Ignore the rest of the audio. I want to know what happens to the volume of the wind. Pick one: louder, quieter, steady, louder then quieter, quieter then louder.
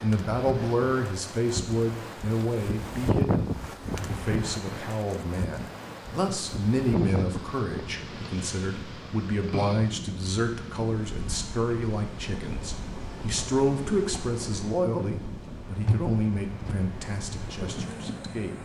quieter.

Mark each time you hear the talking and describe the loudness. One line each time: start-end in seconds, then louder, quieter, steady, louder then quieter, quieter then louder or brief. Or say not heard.
0.0-18.6 steady.